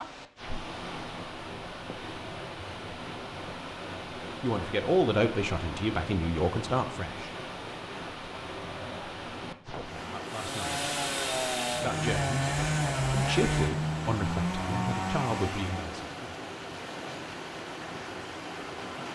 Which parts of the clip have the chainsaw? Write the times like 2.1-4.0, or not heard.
10.2-15.9.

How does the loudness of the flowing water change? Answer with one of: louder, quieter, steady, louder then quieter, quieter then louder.
steady.